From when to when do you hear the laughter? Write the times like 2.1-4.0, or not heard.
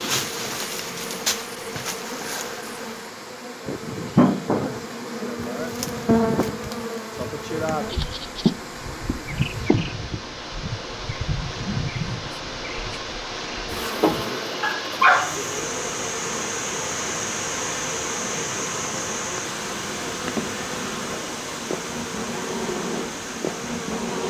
not heard.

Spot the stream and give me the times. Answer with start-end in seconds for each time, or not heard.
0.1-24.2.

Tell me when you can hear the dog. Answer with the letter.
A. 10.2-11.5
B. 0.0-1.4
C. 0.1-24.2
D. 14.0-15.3
D.